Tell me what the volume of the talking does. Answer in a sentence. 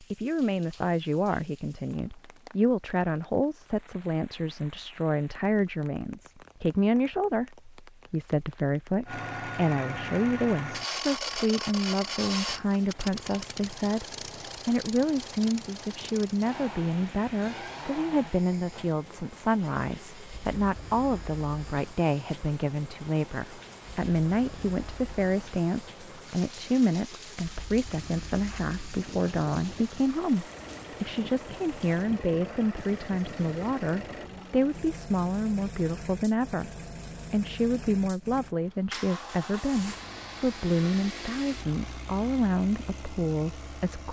The volume of the talking stays about the same.